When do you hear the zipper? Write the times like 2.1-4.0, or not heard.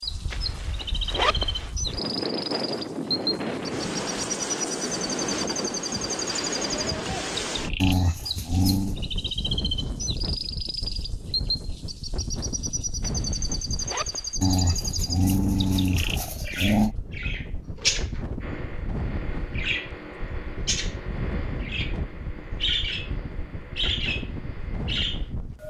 0.3-1.7, 13.0-14.3.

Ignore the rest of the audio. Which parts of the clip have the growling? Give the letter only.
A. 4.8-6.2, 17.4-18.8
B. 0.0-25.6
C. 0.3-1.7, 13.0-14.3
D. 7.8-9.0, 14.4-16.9
D.